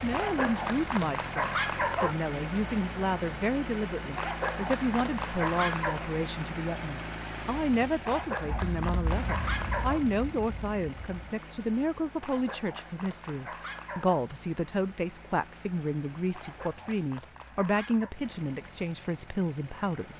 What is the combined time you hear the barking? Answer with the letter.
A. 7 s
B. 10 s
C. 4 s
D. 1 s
B.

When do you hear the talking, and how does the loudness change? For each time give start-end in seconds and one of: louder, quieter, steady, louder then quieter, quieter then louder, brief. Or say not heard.
0.0-20.1 steady.